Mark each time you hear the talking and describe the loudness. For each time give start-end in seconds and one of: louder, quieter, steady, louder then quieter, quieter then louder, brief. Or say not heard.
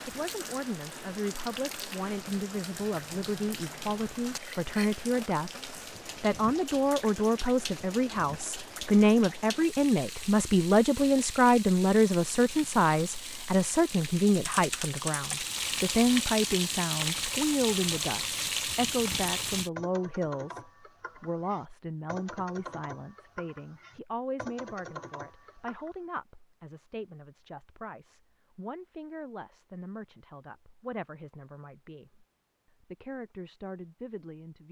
0.1-34.6 louder then quieter.